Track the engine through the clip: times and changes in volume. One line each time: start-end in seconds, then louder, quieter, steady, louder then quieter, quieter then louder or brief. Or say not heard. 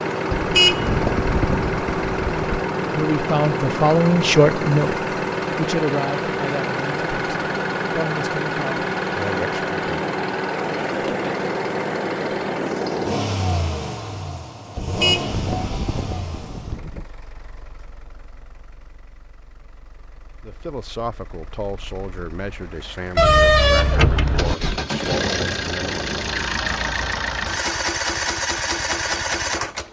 0.0-29.8 quieter then louder.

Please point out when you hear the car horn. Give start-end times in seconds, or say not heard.
0.3-2.6, 14.8-17.1, 23.1-24.8.